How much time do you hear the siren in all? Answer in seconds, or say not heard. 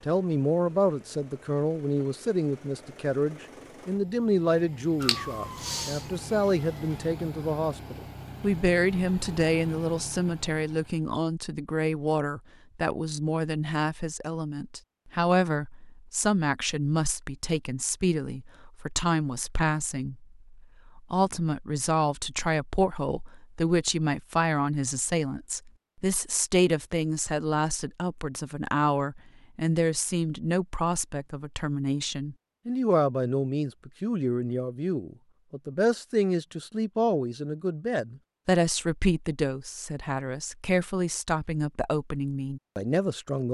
2 s.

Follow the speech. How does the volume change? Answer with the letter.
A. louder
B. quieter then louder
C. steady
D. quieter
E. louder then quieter
C.